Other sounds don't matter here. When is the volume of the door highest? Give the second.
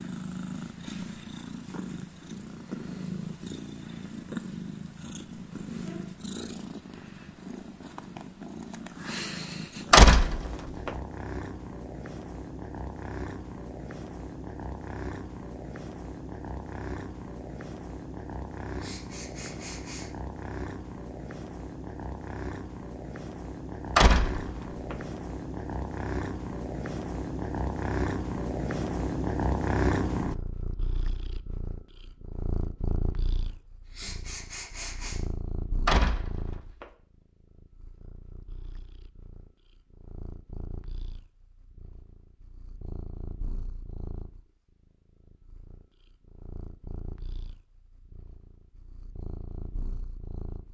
10 s.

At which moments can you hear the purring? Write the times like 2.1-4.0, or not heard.
0.0-50.6.